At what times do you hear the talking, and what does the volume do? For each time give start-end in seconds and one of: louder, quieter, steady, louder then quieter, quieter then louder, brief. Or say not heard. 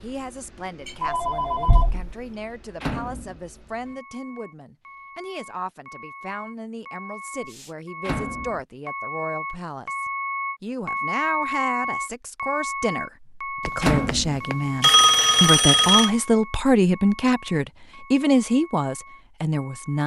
0.0-20.0 louder.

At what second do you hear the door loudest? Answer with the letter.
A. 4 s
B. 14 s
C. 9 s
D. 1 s
B.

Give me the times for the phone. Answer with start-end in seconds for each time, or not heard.
0.8-2.1, 13.7-16.1.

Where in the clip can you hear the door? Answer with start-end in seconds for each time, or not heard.
2.8-3.4, 8.0-8.6, 13.8-14.4.